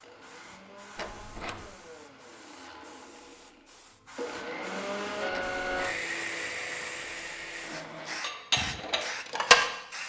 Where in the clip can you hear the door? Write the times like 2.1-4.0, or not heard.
0.9-1.8, 5.3-6.0.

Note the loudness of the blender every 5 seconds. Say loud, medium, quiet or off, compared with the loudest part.
medium, loud.